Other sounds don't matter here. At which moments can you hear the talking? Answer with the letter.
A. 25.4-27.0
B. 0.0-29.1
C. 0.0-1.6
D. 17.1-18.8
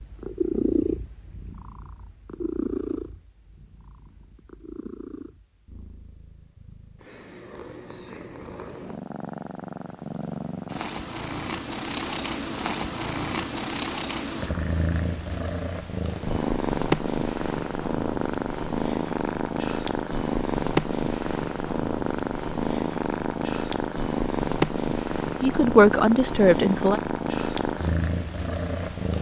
A.